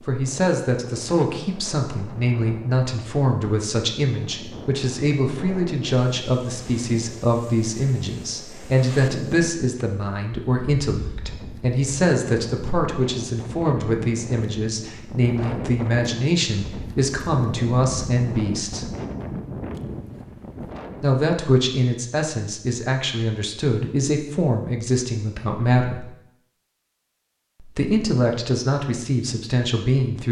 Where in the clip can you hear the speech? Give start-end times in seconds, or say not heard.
0.0-18.9, 21.0-26.1, 27.6-30.2.